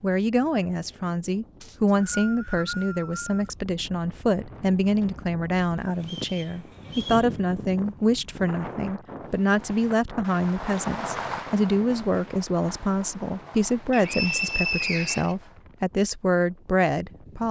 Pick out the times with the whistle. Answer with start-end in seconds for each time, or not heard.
1.6-3.5, 6.0-7.3, 13.9-15.3.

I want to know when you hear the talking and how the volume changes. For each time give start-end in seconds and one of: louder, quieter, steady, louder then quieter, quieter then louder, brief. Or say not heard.
0.0-17.4 steady.